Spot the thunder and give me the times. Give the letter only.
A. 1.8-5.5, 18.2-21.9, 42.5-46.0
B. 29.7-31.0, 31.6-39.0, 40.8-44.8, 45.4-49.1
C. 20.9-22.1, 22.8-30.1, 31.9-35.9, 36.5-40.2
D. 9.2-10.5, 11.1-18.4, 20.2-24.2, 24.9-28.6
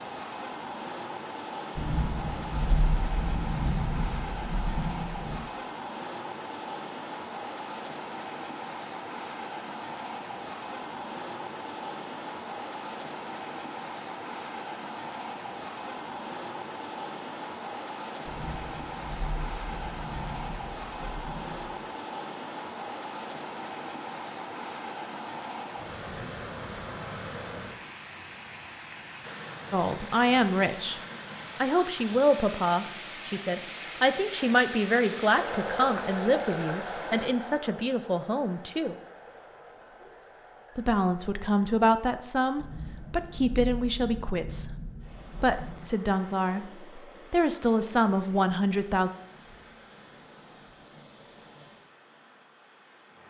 A.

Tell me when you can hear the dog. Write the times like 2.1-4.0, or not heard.
not heard.